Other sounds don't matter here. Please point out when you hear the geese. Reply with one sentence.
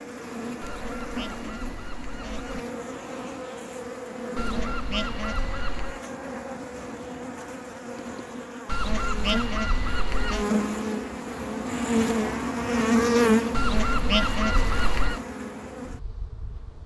You can hear the geese from 0.6 to 2.6 s, from 4.3 to 6.0 s, from 8.7 to 10.4 s and from 13.5 to 15.2 s.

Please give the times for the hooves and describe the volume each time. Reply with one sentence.
The hooves can't be heard in this clip.